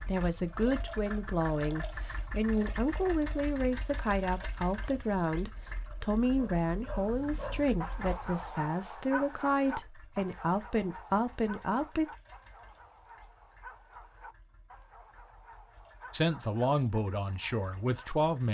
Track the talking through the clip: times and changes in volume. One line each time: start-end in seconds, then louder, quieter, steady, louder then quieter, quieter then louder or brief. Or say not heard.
0.1-12.1 steady
16.1-18.5 brief.